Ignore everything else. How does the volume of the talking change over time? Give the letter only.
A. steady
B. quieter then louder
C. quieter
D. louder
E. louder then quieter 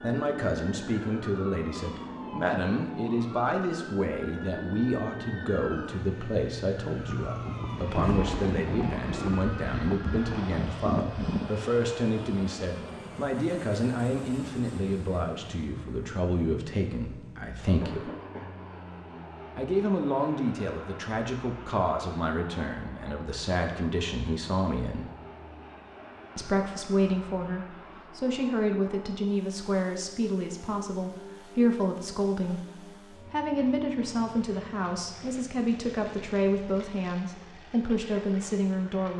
A.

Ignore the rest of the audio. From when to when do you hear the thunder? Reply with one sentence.
You can hear the thunder from 7.0 to 11.5 s.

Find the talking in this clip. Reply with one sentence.
You can hear the talking from 0.0 to 18.1 s, from 19.6 to 25.1 s and from 26.4 to 39.1 s.